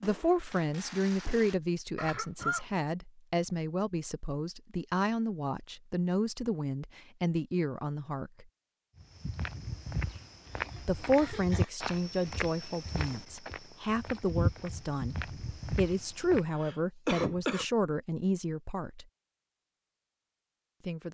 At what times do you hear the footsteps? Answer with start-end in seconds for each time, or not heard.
8.9-16.4.